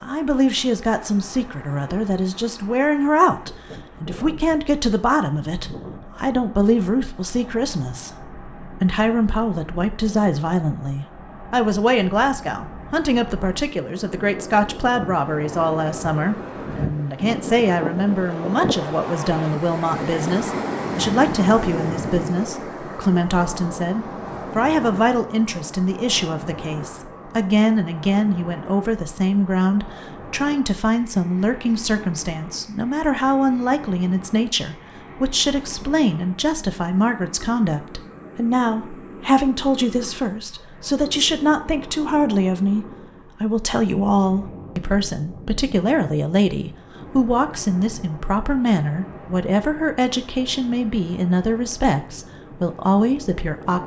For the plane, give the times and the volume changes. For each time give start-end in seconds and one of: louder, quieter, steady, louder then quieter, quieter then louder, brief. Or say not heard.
not heard.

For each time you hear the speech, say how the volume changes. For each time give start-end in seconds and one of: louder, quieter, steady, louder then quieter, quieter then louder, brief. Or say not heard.
0.0-53.8 steady.